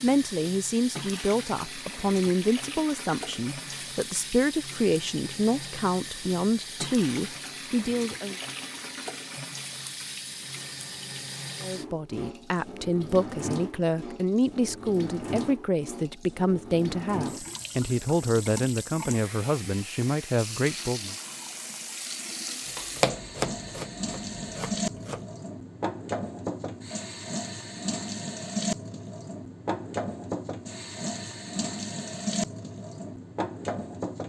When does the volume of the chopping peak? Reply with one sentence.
The volume of the chopping peaks at 23 seconds.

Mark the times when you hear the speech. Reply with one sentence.
The speech can be heard from 0.0 to 8.3 s and from 11.6 to 21.1 s.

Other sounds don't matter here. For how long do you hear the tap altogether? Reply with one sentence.
You can hear the tap for 34 seconds altogether.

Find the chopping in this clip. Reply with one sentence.
You can hear the chopping from 22.6 to 25.2 s.